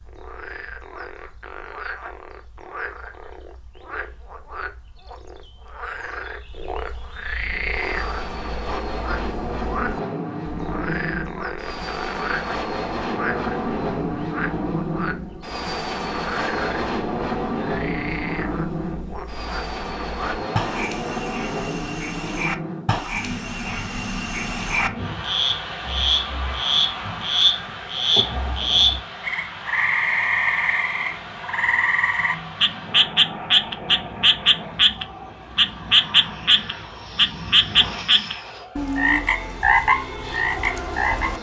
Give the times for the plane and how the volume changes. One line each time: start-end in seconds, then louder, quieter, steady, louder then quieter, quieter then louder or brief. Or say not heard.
7.3-41.3 quieter.